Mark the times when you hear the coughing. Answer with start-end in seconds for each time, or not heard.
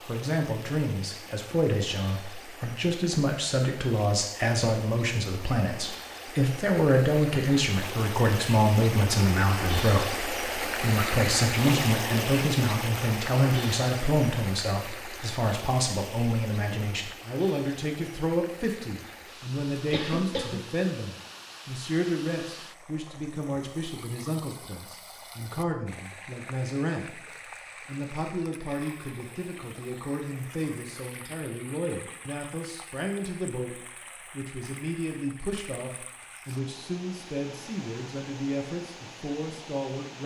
19.8-20.6.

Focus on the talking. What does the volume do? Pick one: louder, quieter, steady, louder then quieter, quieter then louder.
quieter.